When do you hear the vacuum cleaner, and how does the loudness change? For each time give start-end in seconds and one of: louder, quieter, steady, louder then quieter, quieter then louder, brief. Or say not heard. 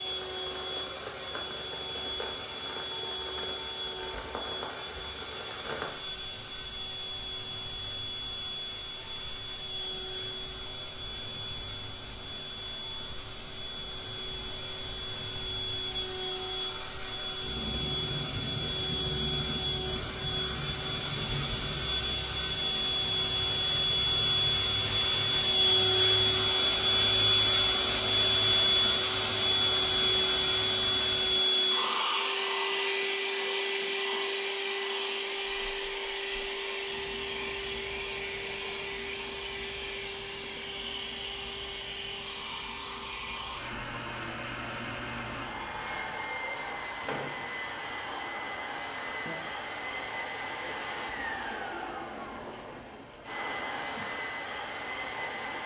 0.0-55.6 louder then quieter.